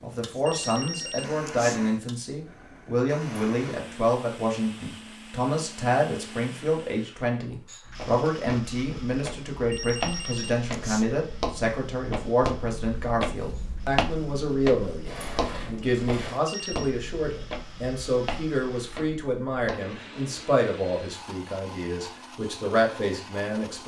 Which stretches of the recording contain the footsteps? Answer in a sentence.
The footsteps can be heard from 7.8 to 19.8 s.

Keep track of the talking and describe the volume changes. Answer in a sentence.
The loudness of the talking stays about the same.